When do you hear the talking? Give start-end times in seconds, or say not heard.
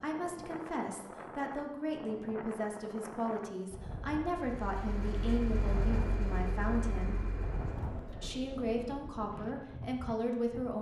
0.0-7.2, 8.2-10.7.